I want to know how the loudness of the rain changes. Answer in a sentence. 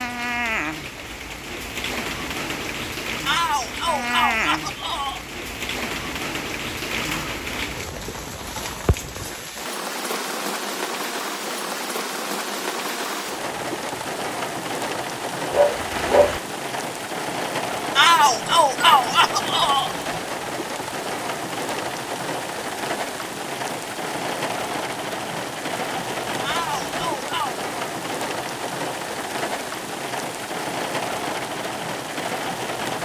The loudness of the rain stays about the same.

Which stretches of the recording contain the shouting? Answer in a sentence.
You can hear the shouting from 3.2 to 5.2 s, from 17.9 to 19.9 s and from 26.4 to 27.6 s.